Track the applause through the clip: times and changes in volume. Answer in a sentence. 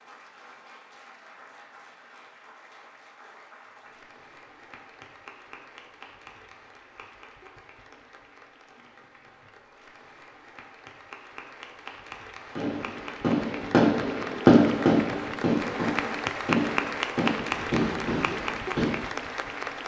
The applause can be heard from 0.0 to 19.8 s, getting louder.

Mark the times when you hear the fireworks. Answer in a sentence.
The fireworks can be heard from 12.6 to 18.9 s.